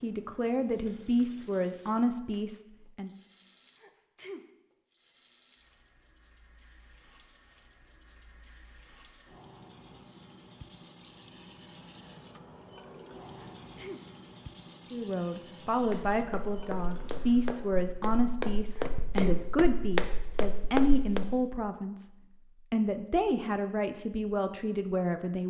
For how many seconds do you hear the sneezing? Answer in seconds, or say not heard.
2 s.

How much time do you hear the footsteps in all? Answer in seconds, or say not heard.
6 s.